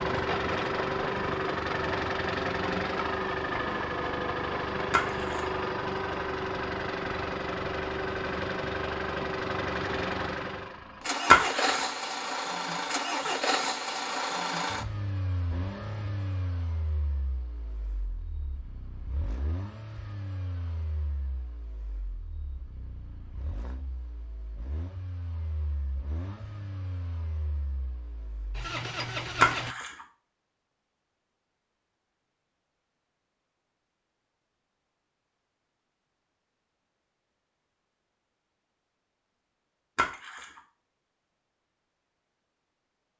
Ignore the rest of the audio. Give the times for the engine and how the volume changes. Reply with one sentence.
You can hear the engine from 0.0 to 29.8 s, getting quieter then louder.